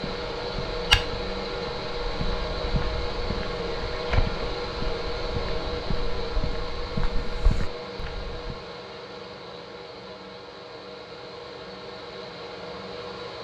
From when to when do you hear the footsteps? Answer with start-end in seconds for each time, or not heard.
0.0-8.6.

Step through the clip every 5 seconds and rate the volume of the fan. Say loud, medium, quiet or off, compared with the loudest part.
loud, loud, medium.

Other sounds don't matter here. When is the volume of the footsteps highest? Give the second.
1 s.